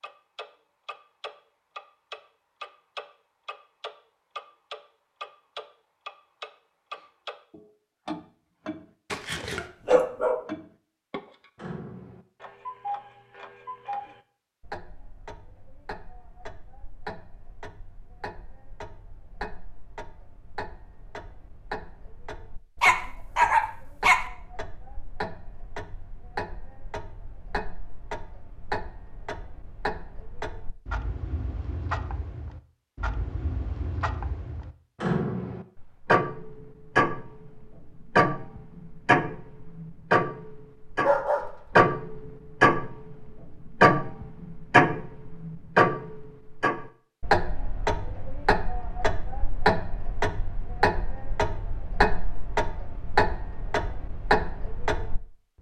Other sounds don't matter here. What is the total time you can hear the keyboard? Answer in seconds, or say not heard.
not heard.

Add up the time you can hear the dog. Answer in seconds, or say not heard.
4 s.